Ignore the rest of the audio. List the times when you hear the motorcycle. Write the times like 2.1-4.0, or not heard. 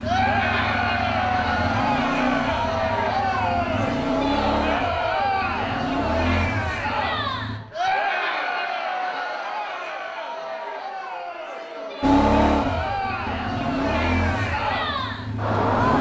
0.0-7.6, 12.0-15.9.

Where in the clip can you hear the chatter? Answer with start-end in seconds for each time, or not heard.
0.0-15.9.